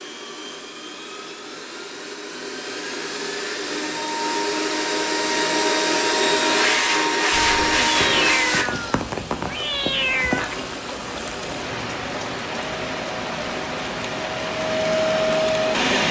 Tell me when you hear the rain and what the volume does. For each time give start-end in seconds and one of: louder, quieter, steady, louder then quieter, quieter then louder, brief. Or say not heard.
7.3-16.0 steady.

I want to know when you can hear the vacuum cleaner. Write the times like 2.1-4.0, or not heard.
0.0-8.7, 12.7-16.0.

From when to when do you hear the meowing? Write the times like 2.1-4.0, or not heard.
7.8-10.6.